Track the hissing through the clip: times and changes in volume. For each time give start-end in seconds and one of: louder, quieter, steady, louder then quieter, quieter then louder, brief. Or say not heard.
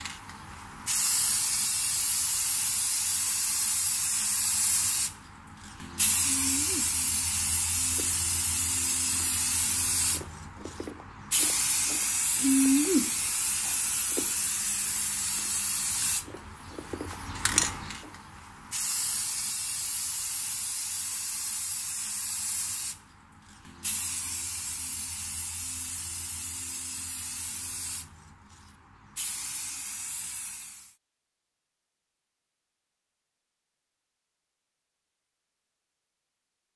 0.0-30.9 quieter.